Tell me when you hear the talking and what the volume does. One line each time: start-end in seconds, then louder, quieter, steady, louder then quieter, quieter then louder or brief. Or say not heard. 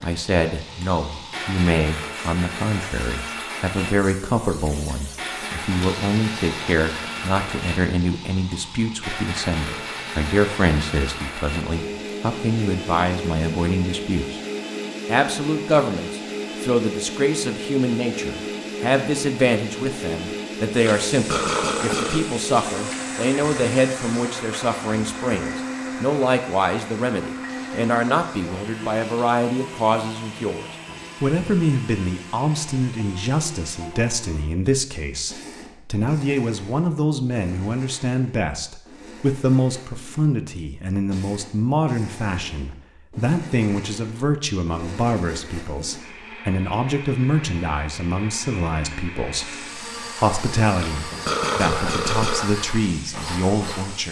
0.0-14.4 steady
15.1-54.0 steady.